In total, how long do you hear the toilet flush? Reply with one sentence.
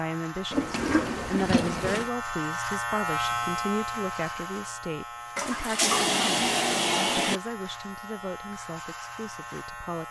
You can hear the toilet flush for 4 seconds altogether.